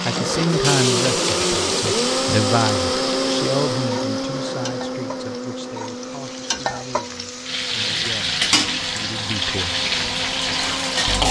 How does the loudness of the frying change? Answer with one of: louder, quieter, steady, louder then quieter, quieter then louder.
quieter then louder.